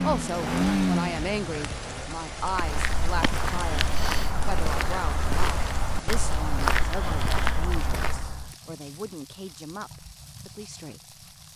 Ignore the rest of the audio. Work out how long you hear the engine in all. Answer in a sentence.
You can hear the engine for 2 seconds altogether.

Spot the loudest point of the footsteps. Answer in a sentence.
The volume of the footsteps peaks at 7 seconds.